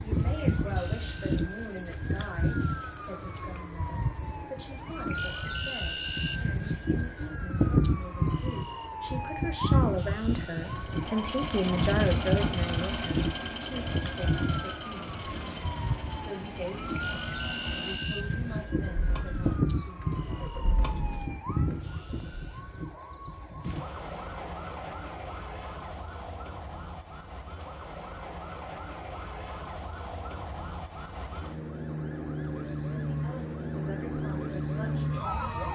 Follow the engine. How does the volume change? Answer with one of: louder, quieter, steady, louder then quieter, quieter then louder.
quieter.